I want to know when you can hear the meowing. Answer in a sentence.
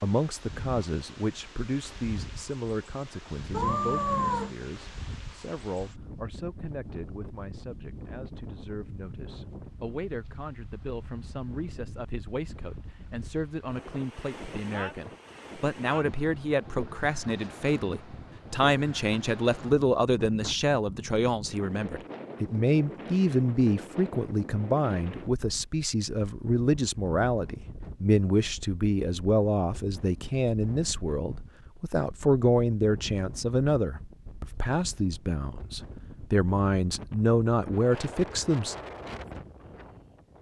The meowing can be heard from 3.5 to 4.5 s.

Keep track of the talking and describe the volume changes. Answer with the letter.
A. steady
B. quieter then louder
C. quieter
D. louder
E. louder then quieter
D.